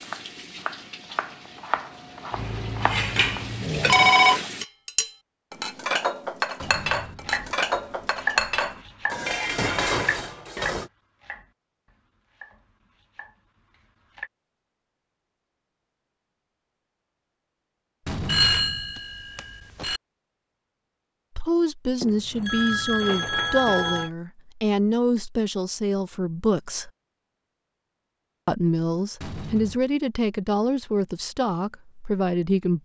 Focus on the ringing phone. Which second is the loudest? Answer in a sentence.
The volume of the ringing phone peaks at 4 seconds.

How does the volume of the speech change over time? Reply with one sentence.
The loudness of the speech stays about the same.